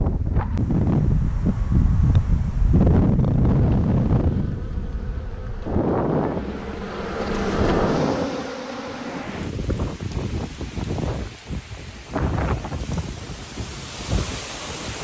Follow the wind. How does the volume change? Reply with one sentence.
The volume of the wind goes down.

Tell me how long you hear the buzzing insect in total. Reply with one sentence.
You can hear the buzzing insect for 6 seconds altogether.